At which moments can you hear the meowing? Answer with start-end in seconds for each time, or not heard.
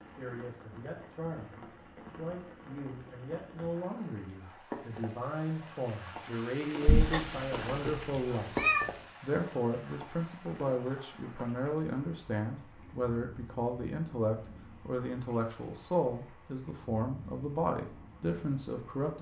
6.8-8.9.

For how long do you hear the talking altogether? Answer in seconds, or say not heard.
19 s.